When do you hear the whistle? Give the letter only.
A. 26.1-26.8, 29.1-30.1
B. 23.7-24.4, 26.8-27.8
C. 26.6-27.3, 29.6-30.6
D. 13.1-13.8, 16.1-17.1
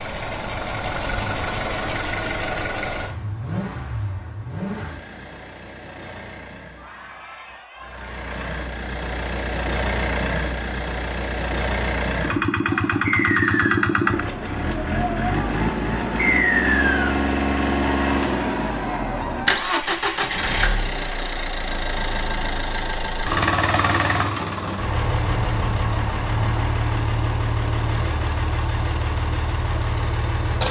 D.